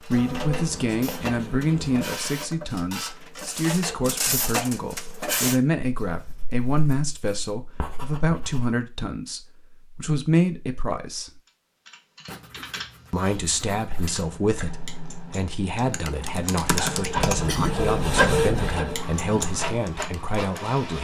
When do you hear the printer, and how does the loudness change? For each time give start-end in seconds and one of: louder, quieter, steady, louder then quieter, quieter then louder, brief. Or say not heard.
0.0-5.6 louder
16.6-20.9 louder then quieter.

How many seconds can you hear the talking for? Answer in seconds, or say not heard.
19 s.